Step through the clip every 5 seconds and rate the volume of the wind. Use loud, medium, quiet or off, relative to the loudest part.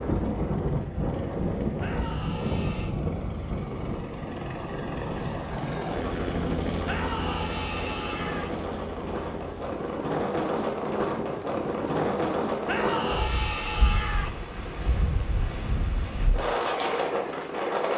loud, medium, loud, loud.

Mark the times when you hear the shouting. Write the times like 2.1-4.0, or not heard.
1.8-3.0, 6.8-8.5, 12.7-14.3.